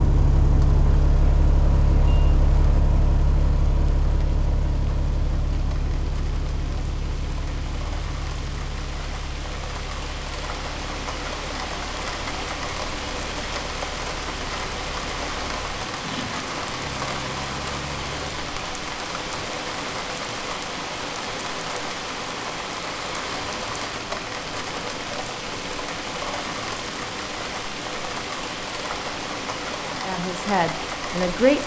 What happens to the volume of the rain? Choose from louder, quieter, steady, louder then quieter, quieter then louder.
louder.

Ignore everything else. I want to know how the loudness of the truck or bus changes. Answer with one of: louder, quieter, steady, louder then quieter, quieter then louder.
quieter then louder.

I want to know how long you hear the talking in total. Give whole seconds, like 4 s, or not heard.
2 s.